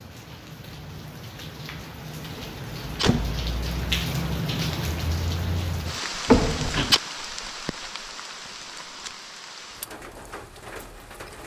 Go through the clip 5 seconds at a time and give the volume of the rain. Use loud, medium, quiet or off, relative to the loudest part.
loud, loud, medium.